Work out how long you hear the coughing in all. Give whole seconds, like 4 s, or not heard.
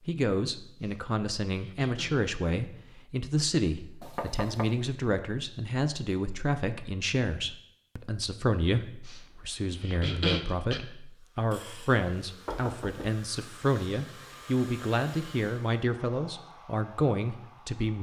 3 s.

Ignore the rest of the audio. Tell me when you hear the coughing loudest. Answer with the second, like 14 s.
10 s.